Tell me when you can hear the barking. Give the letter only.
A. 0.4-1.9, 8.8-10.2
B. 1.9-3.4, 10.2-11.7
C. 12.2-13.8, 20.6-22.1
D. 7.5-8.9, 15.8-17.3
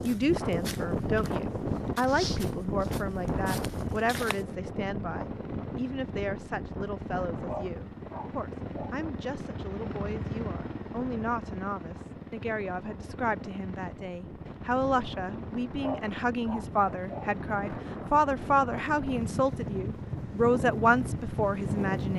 D.